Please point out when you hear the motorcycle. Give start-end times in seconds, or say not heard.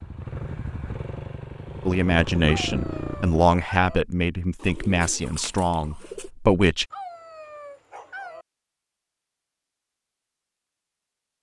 0.0-3.4.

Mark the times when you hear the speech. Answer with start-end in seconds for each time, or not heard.
1.9-6.8.